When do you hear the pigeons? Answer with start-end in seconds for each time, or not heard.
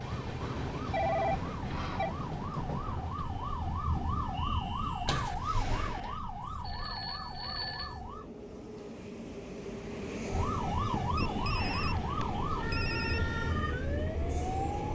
not heard.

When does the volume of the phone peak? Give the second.
1 s.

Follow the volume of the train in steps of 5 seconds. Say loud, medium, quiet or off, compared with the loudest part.
loud, medium, loud.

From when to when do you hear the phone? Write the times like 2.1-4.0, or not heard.
0.4-2.1, 6.4-8.0, 11.2-13.3.